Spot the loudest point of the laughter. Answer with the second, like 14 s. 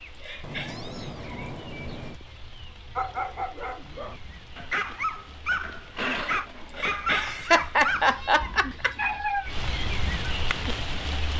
8 s.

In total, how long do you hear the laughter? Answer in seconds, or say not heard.
3 s.